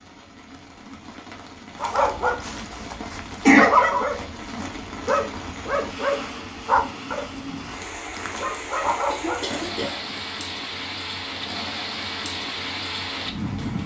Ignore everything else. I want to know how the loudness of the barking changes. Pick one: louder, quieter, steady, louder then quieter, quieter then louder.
louder then quieter.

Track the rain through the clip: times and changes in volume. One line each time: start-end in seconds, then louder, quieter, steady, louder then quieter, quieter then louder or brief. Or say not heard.
0.0-13.8 louder.